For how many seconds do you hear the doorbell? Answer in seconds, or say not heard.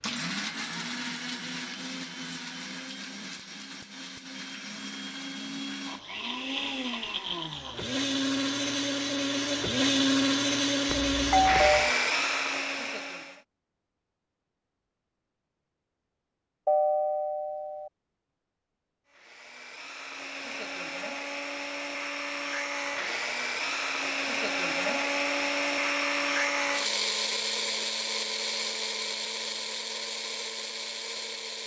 2 s.